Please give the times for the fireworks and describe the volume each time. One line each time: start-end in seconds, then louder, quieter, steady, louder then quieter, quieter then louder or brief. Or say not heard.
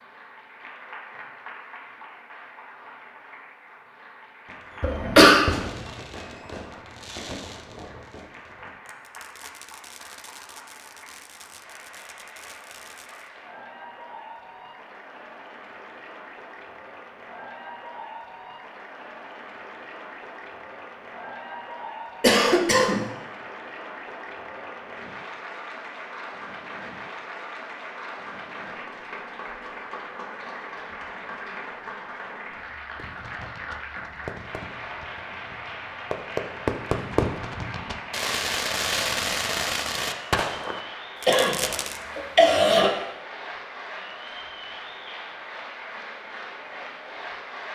4.5-13.3 quieter
33.0-42.0 louder.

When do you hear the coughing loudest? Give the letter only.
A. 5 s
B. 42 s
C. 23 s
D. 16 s
A.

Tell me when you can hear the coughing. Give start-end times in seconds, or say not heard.
4.8-5.5, 22.2-23.1, 41.2-42.9.